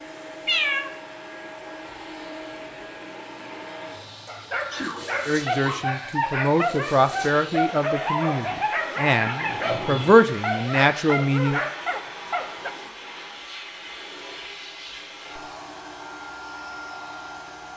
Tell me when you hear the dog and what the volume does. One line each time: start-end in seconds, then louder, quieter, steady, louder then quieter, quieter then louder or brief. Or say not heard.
4.2-12.7 steady.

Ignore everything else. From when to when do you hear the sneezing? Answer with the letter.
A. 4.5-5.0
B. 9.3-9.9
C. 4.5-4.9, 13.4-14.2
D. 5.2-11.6
A.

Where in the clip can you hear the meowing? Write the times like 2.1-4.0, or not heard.
0.5-0.9, 9.4-10.2.